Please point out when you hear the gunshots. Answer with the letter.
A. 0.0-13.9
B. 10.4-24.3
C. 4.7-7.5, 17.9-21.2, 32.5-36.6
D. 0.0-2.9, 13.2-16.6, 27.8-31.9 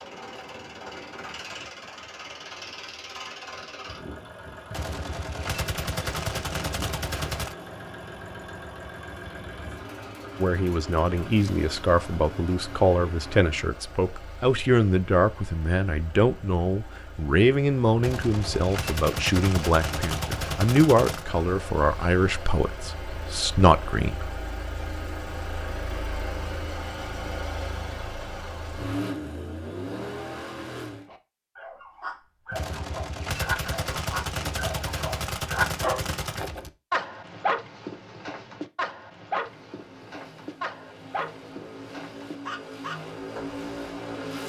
C.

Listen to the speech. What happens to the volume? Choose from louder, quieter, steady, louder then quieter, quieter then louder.
steady.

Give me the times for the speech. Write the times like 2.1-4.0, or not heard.
10.4-24.3.